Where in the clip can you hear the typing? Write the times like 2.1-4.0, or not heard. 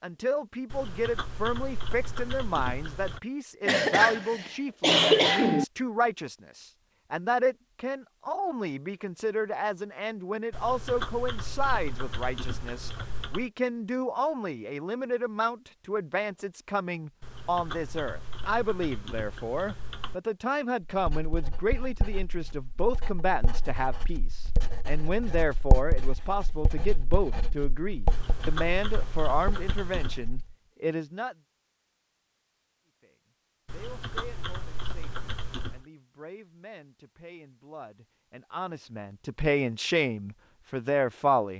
0.7-3.2, 10.5-13.5, 17.2-20.2, 28.1-30.2, 33.6-35.9.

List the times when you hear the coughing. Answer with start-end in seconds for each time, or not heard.
3.6-5.7.